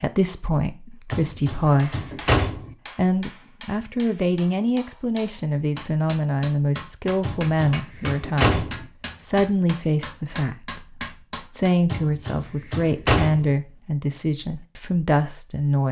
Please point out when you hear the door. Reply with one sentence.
The door can be heard from 1.1 to 2.8 s, from 7.2 to 8.8 s and from 11.9 to 13.6 s.